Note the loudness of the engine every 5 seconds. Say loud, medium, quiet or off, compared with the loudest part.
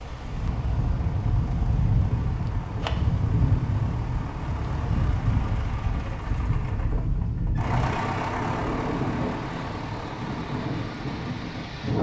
medium, loud, medium.